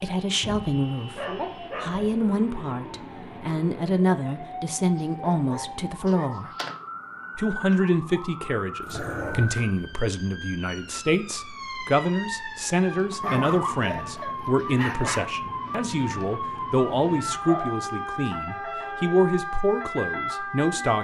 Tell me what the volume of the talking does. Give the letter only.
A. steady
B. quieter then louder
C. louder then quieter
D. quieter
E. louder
A.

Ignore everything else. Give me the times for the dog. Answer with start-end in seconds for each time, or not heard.
0.4-2.2, 4.8-6.8, 8.8-9.8, 13.2-15.2, 17.4-18.3.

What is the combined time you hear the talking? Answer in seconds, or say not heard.
20 s.